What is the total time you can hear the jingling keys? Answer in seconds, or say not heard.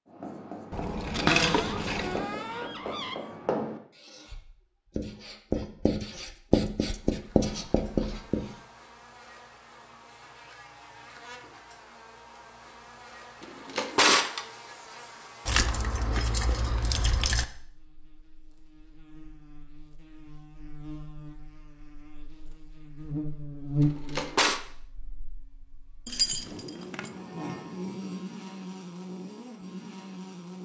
5 s.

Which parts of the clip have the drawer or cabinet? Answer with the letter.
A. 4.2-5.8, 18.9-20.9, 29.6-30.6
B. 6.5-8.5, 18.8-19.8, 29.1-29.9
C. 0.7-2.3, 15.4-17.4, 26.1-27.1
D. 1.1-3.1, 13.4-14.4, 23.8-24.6
D.